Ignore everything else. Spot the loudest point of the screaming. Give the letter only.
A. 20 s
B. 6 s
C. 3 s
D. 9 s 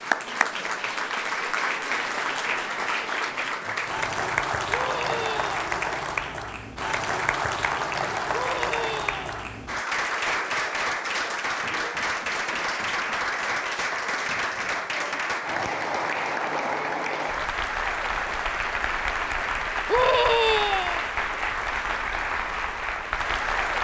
A.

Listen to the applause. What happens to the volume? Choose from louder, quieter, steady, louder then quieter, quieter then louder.
steady.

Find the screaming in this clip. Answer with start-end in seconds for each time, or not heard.
4.7-5.6, 8.3-9.3, 19.9-21.0.